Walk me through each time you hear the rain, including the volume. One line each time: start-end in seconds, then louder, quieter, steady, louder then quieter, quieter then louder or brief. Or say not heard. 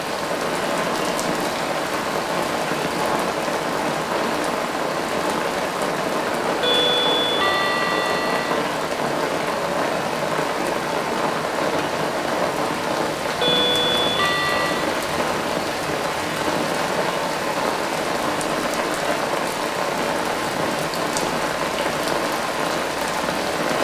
0.0-23.7 steady.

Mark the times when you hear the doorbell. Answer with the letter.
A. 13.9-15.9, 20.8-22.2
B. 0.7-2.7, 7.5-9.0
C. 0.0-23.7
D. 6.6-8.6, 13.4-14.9
D.